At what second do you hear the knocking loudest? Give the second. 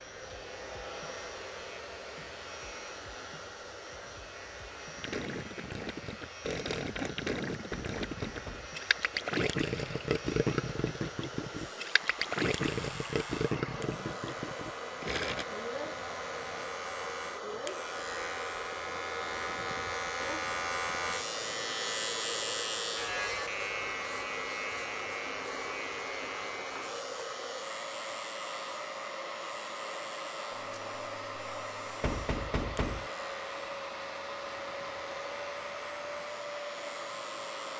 33 s.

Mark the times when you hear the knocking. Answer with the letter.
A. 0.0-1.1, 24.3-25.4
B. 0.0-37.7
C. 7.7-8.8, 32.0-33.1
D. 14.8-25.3
C.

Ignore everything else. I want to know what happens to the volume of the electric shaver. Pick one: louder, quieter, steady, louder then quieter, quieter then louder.
louder then quieter.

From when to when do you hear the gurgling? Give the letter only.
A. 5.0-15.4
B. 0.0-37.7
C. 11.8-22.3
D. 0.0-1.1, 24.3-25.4
A.